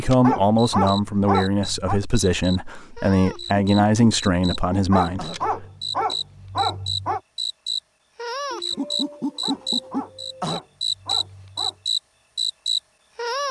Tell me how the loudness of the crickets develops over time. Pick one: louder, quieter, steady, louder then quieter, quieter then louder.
louder.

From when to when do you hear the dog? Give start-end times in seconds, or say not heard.
0.2-2.0, 4.9-7.2, 9.4-11.8.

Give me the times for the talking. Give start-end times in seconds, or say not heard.
0.0-5.7.